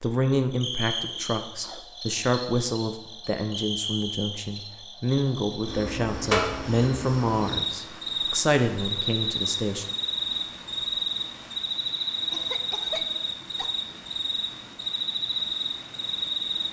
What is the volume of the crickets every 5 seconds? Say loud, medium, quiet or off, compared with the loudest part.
medium, loud, loud, loud.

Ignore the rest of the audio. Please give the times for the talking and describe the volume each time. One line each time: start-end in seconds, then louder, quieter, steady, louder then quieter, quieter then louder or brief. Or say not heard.
0.0-9.8 steady.